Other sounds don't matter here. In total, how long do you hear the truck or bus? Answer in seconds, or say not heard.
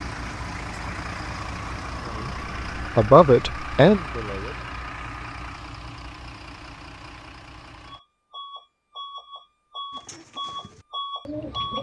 12 s.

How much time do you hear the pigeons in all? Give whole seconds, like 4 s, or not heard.
2 s.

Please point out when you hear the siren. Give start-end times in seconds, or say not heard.
not heard.